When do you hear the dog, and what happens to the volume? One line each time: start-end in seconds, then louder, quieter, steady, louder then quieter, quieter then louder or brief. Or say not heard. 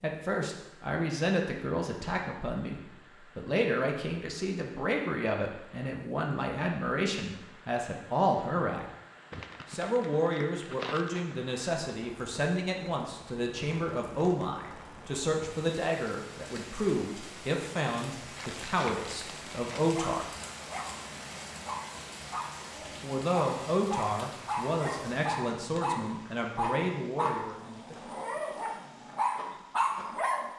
19.9-30.5 louder.